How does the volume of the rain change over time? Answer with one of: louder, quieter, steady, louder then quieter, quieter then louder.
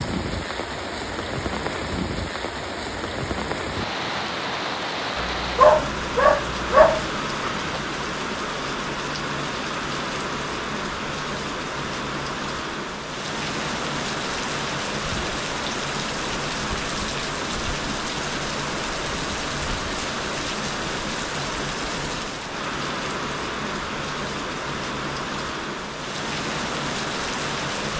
steady.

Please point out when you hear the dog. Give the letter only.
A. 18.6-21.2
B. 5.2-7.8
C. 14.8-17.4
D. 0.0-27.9
B.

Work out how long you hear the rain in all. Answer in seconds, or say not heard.
28 s.